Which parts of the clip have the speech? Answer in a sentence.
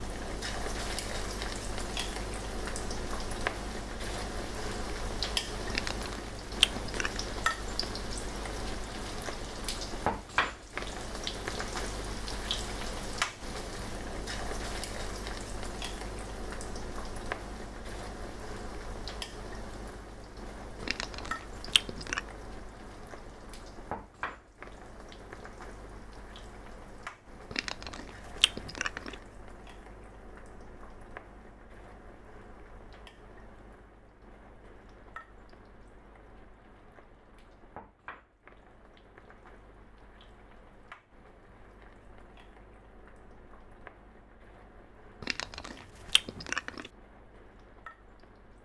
You can't hear the speech here.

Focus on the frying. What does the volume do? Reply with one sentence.
The volume of the frying goes down.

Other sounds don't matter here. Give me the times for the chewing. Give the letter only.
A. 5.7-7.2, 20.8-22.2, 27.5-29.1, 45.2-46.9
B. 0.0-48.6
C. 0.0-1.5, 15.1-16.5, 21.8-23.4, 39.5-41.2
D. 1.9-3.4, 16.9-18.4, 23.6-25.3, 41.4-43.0
A.